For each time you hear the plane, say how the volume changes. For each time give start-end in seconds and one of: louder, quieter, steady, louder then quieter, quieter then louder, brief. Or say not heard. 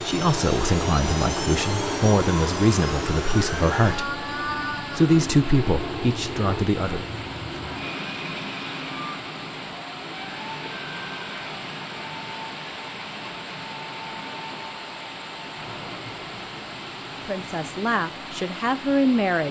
0.0-19.2 quieter.